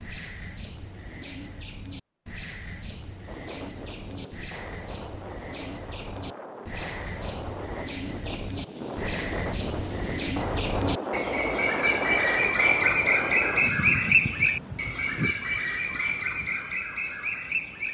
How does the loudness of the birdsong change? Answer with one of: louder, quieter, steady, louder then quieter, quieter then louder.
louder.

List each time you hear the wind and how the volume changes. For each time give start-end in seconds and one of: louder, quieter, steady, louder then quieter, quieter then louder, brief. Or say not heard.
3.2-17.8 louder then quieter.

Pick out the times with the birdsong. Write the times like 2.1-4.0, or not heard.
0.0-17.8.